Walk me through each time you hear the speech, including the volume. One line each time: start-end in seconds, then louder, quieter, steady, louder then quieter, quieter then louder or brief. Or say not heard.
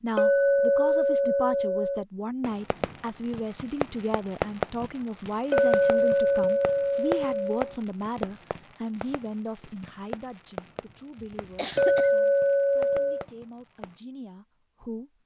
0.0-15.1 quieter.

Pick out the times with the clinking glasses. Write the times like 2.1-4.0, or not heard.
0.1-2.0, 5.5-7.7, 11.8-13.2.